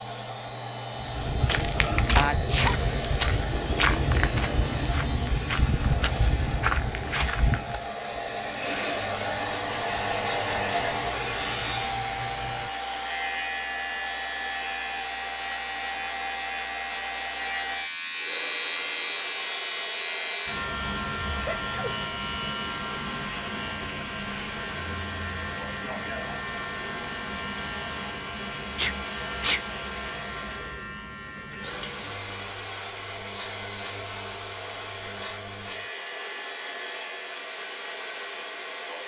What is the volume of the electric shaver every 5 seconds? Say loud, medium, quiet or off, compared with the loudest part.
medium, medium, loud, loud, loud, loud, medium, medium.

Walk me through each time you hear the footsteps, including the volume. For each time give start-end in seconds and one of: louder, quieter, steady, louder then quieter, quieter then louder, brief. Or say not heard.
0.9-7.9 steady.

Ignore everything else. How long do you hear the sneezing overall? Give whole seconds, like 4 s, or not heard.
2 s.